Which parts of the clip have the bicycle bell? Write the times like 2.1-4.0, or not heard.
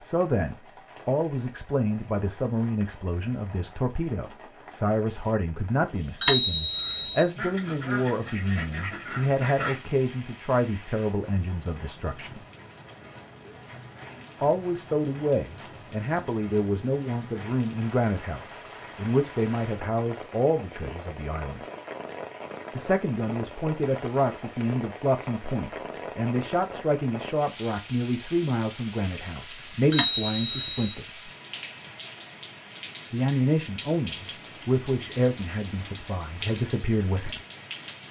6.2-7.2, 29.9-30.9.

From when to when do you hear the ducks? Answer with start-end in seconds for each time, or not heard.
7.3-9.8.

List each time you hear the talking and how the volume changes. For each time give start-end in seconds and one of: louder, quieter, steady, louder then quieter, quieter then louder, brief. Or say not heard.
0.1-12.4 steady
14.4-21.6 steady
22.8-31.3 steady
33.1-37.4 quieter then louder.